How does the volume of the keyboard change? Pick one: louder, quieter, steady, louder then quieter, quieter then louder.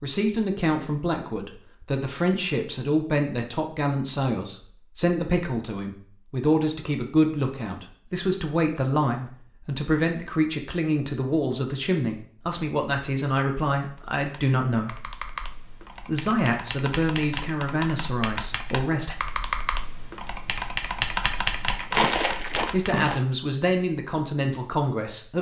louder.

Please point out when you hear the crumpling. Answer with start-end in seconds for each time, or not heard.
21.7-23.2.